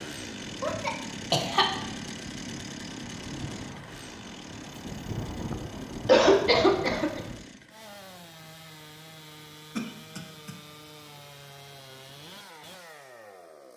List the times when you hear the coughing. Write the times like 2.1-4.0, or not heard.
0.6-1.6, 6.0-7.2, 9.8-10.6.